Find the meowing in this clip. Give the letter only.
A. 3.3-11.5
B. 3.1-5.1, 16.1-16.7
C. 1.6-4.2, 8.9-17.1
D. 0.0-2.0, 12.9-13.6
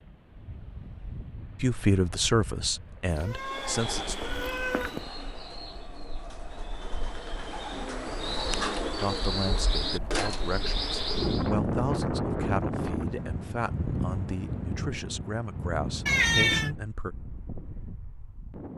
B.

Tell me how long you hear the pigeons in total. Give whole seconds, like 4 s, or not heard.
8 s.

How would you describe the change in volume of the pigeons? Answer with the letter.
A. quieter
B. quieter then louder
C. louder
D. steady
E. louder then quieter
B.